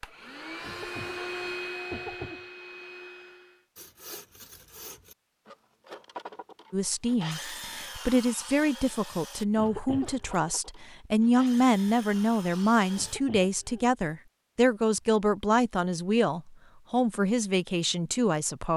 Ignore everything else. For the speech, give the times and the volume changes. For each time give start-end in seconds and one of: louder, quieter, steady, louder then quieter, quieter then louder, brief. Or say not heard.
6.7-18.7 steady.